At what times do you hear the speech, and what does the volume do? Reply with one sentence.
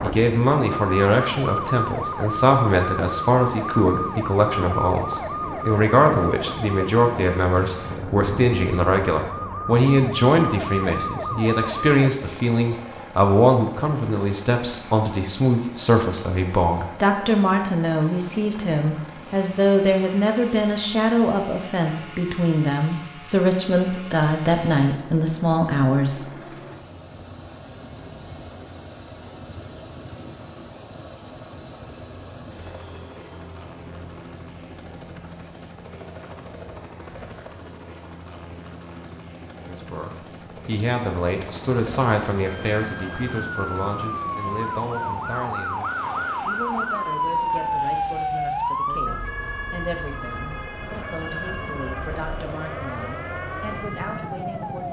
The speech can be heard from 0.0 to 26.4 s, at a steady volume; and from 39.6 to 54.8 s, getting quieter.